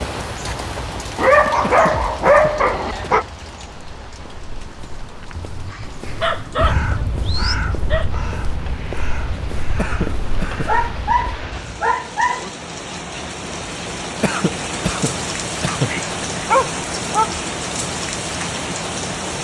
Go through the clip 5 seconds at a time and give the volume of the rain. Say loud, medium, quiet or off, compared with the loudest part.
medium, quiet, medium, loud.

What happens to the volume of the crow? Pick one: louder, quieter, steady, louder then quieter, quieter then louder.
quieter.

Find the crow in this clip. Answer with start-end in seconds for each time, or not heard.
6.0-11.8.